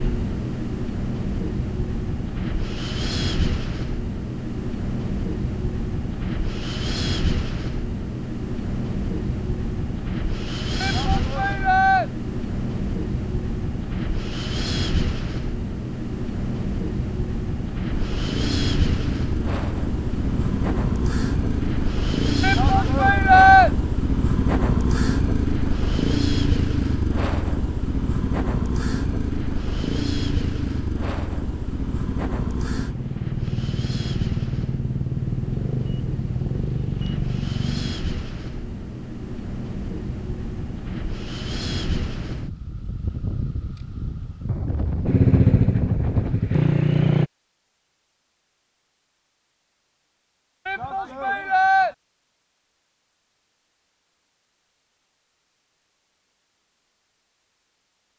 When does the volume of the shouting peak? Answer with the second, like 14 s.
23 s.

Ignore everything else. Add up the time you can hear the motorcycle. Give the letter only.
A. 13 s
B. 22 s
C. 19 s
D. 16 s
B.